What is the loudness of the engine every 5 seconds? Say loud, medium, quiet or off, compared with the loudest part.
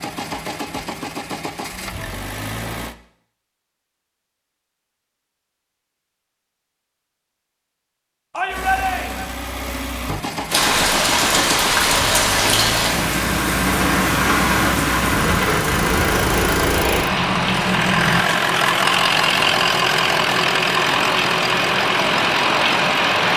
medium, medium, medium, loud, loud.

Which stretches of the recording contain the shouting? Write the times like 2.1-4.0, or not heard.
8.3-9.3.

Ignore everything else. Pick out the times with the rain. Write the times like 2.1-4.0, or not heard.
10.4-23.3.